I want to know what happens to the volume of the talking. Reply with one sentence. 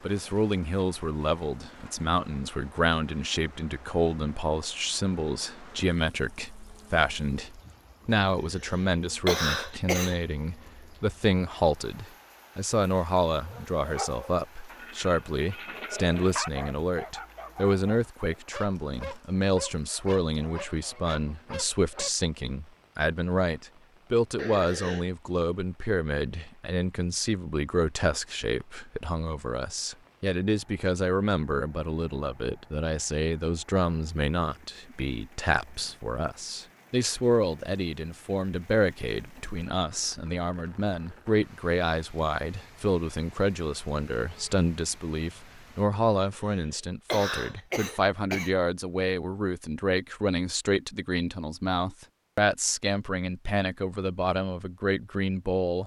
The loudness of the talking stays about the same.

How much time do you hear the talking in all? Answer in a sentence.
You can hear the talking for 56 seconds altogether.